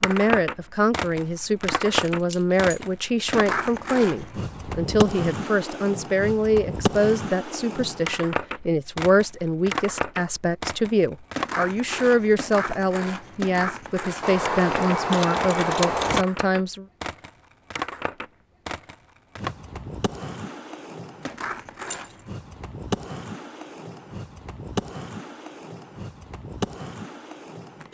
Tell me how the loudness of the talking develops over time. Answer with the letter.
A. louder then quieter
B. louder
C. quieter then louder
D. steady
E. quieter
D.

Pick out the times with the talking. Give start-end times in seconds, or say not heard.
0.0-16.9.